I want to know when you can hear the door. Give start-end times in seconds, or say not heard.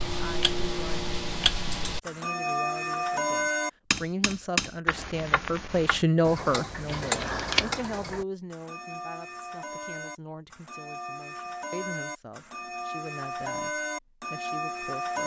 not heard.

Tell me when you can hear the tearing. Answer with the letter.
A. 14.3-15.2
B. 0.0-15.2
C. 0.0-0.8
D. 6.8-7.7
D.